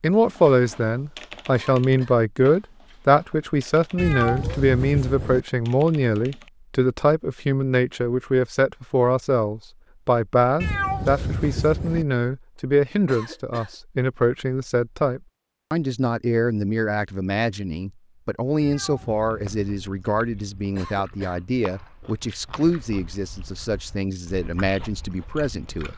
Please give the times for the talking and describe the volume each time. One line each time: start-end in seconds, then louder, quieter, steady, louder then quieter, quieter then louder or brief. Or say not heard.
0.0-25.9 quieter.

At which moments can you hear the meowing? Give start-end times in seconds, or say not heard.
4.0-5.4, 10.6-12.1, 18.6-19.9.